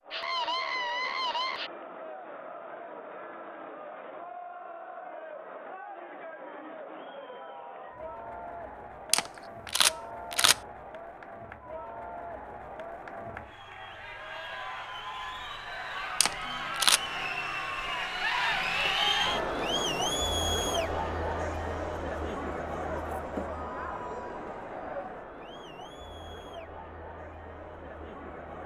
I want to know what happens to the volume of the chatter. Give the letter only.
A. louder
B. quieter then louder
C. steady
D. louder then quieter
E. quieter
D.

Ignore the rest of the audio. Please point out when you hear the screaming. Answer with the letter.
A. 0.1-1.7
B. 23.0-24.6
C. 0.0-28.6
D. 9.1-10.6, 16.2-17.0
A.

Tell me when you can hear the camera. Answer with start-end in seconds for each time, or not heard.
9.1-10.6, 16.2-17.0.